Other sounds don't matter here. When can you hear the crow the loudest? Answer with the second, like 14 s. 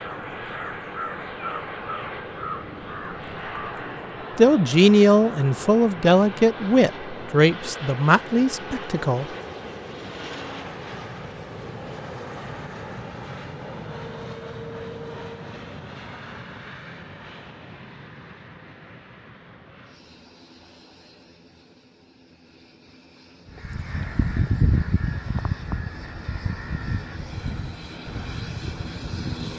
25 s.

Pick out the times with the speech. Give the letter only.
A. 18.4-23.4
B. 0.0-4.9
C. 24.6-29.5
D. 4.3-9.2
D.